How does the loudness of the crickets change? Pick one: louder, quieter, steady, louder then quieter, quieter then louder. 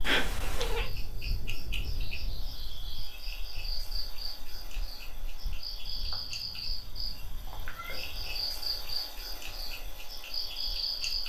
louder.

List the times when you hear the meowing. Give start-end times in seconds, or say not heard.
0.0-0.9, 5.9-8.0.